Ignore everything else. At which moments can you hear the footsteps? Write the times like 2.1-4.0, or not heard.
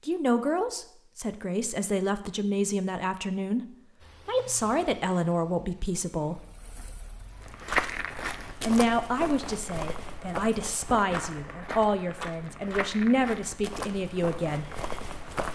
7.3-15.4.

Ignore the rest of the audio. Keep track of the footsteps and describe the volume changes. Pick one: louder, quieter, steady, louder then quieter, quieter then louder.
quieter.